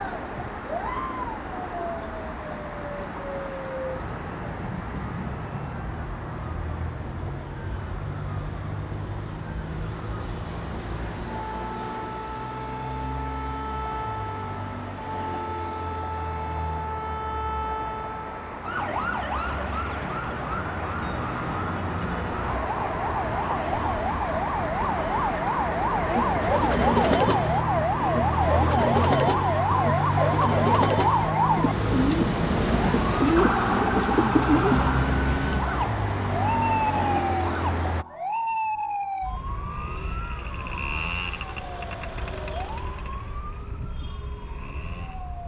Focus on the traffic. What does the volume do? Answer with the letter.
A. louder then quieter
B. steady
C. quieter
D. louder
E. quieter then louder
D.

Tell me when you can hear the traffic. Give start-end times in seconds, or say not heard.
0.0-38.0.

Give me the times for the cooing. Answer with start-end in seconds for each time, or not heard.
26.1-34.9.